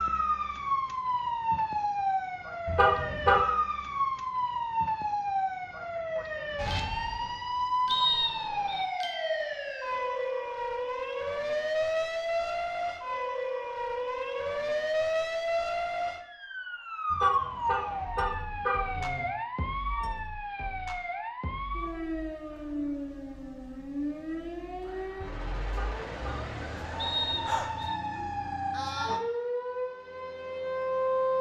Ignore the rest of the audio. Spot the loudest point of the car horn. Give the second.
3 s.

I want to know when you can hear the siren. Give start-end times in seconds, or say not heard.
0.0-31.3.